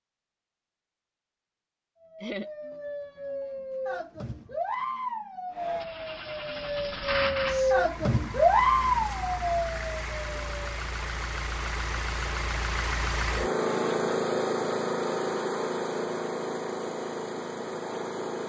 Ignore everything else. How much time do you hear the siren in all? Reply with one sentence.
You can hear the siren for 9 seconds altogether.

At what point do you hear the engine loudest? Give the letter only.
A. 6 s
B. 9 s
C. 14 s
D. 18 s
C.